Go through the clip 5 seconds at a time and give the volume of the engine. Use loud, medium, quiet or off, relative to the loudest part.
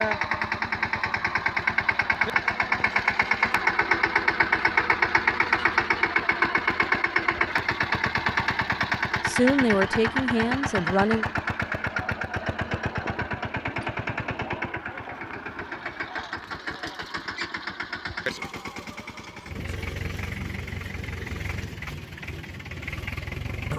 loud, loud, medium, medium, medium.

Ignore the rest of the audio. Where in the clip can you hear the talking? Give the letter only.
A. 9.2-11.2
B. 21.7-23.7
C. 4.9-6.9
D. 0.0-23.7
A.